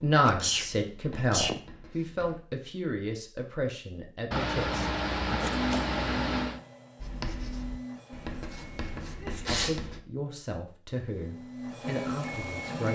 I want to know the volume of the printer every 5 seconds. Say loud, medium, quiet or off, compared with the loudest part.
off, loud, loud.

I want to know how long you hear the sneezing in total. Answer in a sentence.
You can hear the sneezing for 4 seconds altogether.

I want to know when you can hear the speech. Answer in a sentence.
The speech can be heard from 0.0 to 4.9 s and from 9.4 to 12.9 s.